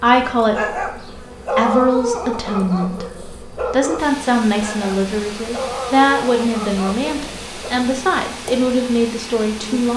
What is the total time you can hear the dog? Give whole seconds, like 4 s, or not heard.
7 s.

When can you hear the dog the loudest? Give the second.
2 s.